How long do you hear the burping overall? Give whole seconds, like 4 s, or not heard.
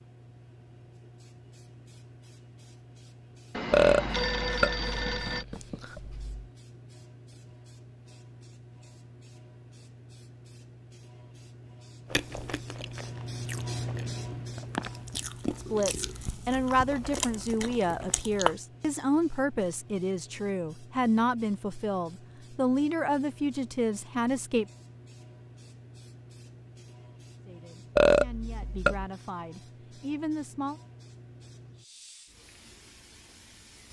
4 s.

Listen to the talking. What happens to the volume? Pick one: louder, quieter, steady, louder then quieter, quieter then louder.
quieter.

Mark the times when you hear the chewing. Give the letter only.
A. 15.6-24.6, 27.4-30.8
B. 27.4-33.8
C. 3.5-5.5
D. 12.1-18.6
D.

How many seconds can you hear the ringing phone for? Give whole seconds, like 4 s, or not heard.
2 s.